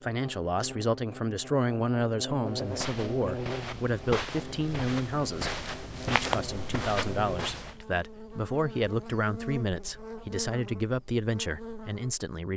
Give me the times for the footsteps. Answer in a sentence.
The footsteps can be heard from 2.5 to 7.8 s.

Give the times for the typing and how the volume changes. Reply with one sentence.
The typing can't be heard in this clip.